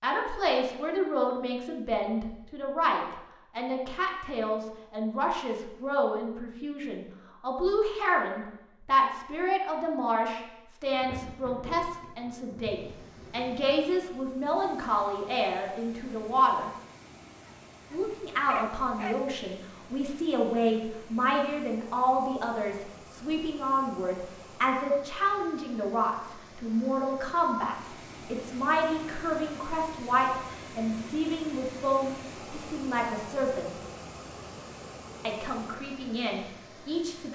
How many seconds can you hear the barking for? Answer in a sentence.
The barking can be heard for 2 seconds in total.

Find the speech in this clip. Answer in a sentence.
You can hear the speech from 0.0 to 16.7 s, from 17.9 to 33.8 s and from 35.2 to 37.2 s.